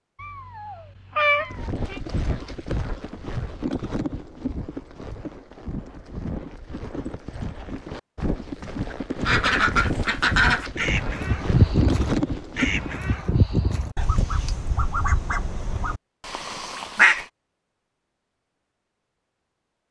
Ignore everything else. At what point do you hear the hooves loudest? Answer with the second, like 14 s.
12 s.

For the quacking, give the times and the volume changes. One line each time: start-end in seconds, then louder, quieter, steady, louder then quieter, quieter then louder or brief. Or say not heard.
9.2-17.2 quieter.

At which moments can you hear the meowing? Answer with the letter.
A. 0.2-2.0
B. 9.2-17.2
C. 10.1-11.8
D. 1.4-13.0
A.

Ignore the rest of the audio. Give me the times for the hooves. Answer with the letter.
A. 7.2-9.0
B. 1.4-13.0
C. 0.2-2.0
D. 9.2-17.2
B.